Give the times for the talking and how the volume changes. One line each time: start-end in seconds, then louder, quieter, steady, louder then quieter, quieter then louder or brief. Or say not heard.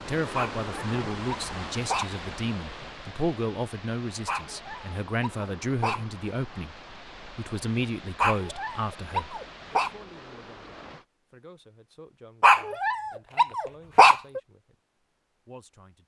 0.1-14.8 quieter
15.4-16.0 brief.